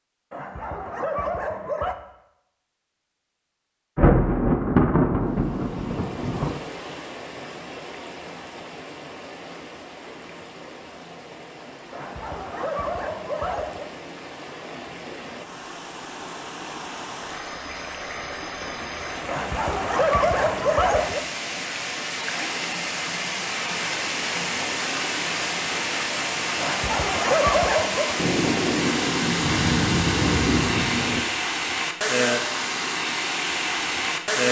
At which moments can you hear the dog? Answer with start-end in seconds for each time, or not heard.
0.3-1.9, 11.9-13.8, 19.2-21.2, 26.6-28.1.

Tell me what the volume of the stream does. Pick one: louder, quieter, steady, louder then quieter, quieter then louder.
louder.